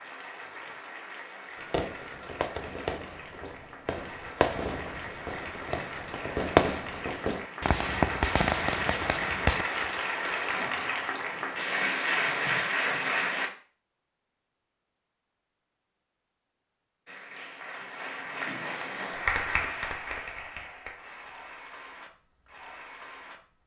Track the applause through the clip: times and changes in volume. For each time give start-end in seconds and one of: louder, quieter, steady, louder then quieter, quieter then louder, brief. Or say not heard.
0.0-13.5 louder
17.1-23.6 louder then quieter.